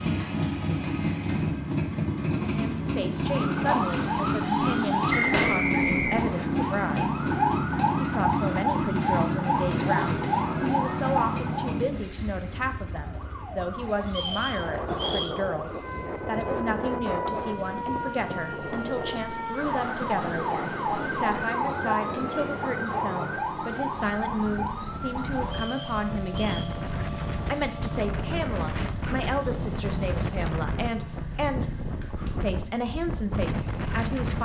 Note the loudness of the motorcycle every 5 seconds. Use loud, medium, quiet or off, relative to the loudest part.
loud, loud, medium, quiet, quiet, quiet, quiet.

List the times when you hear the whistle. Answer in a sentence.
You can hear the whistle from 5.1 to 6.5 s, from 14.1 to 15.3 s and from 25.4 to 26.8 s.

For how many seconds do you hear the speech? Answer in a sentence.
The speech can be heard for 30 seconds in total.